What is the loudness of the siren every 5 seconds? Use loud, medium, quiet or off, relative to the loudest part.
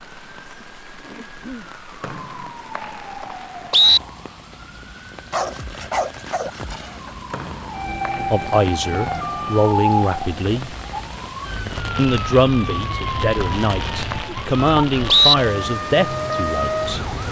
quiet, loud, loud, loud.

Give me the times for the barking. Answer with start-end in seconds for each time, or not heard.
5.3-7.2.